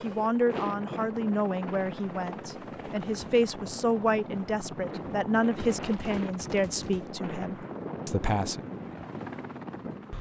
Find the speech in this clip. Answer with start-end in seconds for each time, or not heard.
0.0-8.6.